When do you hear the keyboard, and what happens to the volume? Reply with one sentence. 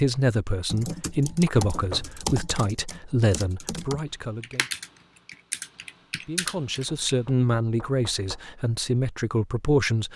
The keyboard can be heard from 0.7 to 7.2 s, at a steady volume.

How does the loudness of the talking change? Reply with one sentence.
The loudness of the talking goes down, then up.